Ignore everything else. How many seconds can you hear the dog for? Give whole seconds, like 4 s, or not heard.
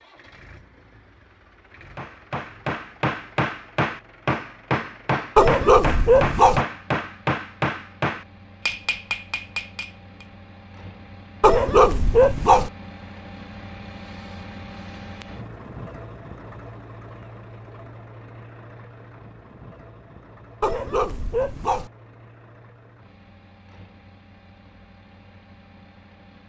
4 s.